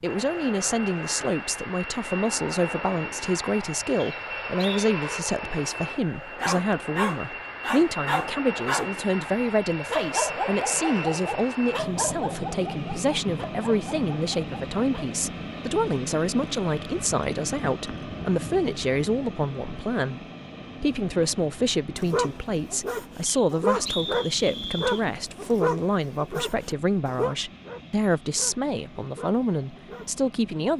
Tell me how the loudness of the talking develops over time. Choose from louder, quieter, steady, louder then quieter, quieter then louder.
steady.